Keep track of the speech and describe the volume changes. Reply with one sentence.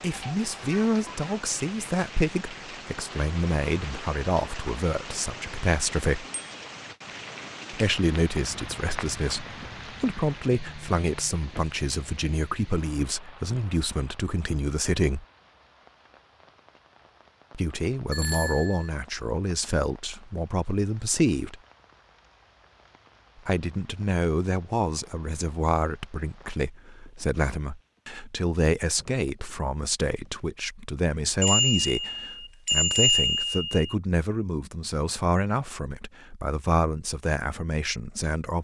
The volume of the speech stays about the same.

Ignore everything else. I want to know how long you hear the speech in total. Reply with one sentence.
The speech can be heard for 33 seconds in total.